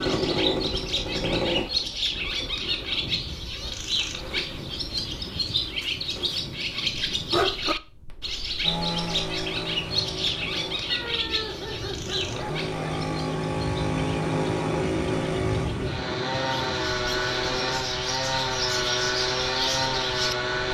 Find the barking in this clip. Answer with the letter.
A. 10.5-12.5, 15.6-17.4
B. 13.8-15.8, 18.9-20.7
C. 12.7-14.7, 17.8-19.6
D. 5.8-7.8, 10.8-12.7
D.